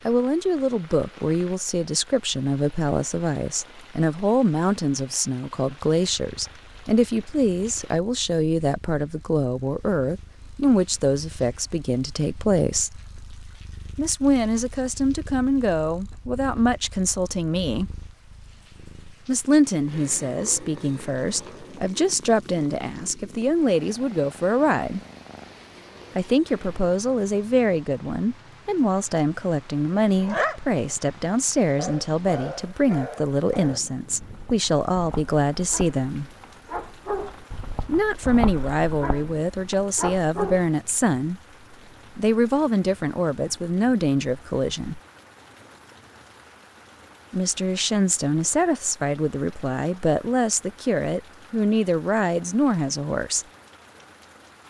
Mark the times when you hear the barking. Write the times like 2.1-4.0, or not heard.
30.2-40.6.